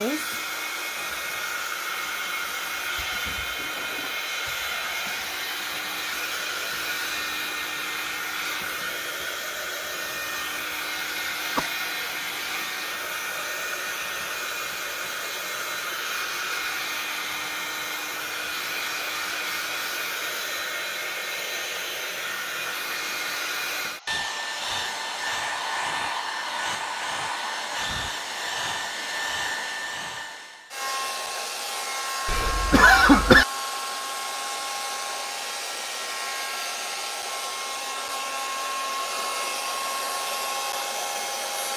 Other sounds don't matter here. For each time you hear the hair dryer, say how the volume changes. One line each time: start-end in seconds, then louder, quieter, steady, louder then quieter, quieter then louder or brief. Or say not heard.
0.0-41.7 steady.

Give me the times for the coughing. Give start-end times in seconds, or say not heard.
11.6-12.2, 32.2-33.5.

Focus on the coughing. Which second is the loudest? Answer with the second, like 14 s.
33 s.